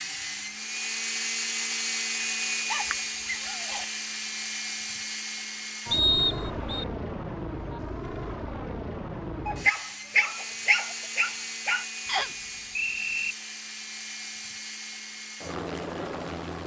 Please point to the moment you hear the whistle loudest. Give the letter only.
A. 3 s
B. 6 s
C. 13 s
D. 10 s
B.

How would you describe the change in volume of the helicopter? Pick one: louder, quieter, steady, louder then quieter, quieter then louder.
quieter.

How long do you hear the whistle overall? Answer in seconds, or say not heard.
2 s.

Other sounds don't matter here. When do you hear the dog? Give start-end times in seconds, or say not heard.
2.7-3.9, 9.4-11.8.